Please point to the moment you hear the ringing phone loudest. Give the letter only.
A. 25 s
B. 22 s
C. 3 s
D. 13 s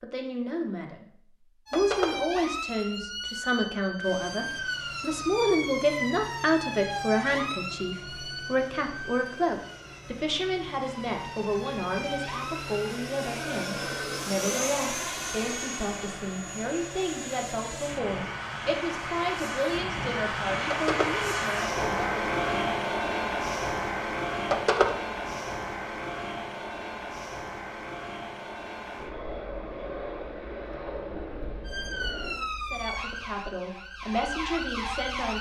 A.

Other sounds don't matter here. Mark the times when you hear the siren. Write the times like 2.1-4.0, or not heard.
1.6-12.9, 31.6-35.3.